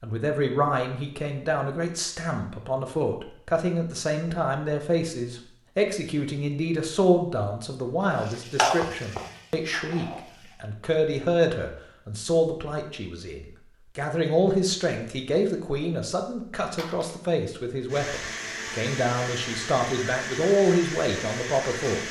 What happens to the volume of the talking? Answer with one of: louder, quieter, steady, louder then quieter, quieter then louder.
steady.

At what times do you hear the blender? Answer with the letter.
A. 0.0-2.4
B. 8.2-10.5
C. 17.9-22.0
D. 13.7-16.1
C.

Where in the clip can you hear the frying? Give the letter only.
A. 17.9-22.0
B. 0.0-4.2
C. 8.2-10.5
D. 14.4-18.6
C.